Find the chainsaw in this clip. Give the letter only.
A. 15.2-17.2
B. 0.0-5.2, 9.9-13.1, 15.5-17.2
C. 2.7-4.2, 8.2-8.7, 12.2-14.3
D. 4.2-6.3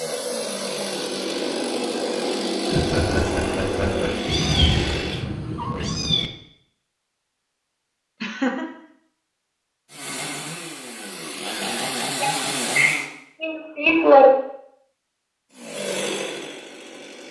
B.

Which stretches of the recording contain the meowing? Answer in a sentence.
The meowing can be heard from 4.2 to 6.3 s.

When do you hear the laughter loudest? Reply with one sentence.
The volume of the laughter peaks at 14 seconds.